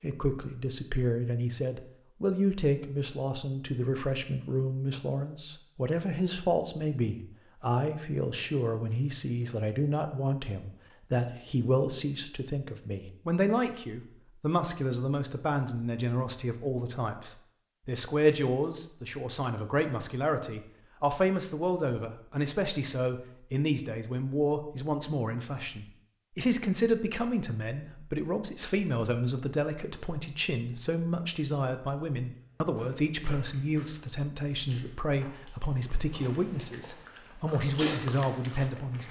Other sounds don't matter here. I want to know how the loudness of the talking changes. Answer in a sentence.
The loudness of the talking stays about the same.